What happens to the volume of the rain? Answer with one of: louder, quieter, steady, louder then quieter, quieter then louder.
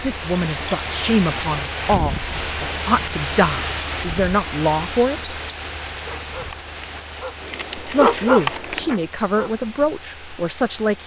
quieter.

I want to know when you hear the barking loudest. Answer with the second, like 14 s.
8 s.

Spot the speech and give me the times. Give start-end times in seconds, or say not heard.
0.0-5.3, 7.8-11.0.